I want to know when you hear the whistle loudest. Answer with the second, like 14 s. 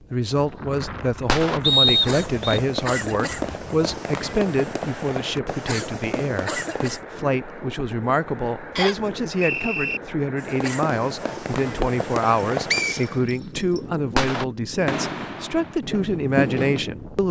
2 s.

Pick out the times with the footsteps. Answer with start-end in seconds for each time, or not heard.
not heard.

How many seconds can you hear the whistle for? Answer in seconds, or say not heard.
3 s.